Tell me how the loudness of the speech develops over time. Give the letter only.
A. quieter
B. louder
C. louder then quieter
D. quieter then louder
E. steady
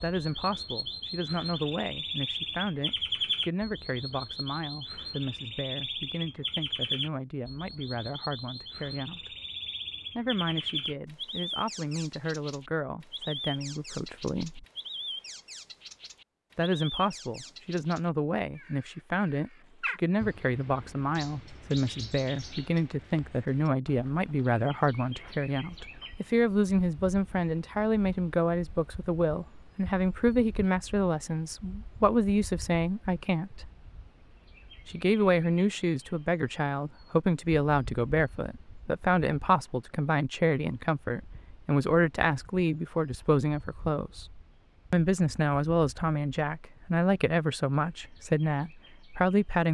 B.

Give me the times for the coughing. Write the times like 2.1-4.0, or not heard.
not heard.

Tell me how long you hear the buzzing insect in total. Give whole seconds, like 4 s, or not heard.
not heard.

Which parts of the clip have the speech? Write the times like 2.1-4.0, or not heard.
0.0-9.3, 10.2-14.7, 16.6-33.7, 34.9-49.6.